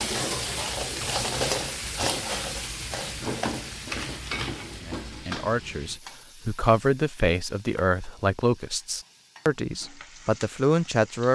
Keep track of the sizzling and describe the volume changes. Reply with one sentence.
The loudness of the sizzling goes down, then up.